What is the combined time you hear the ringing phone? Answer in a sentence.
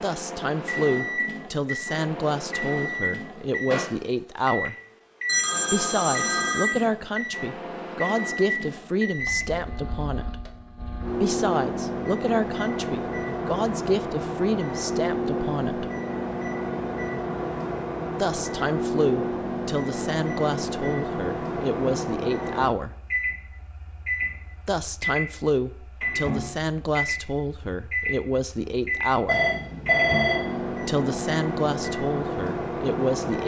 The ringing phone can be heard for 3 seconds in total.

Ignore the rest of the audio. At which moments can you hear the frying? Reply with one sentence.
You can't hear the frying here.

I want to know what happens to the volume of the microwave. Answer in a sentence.
The loudness of the microwave stays about the same.